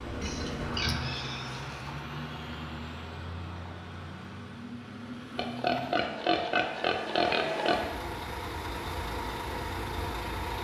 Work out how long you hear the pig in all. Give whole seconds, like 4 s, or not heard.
4 s.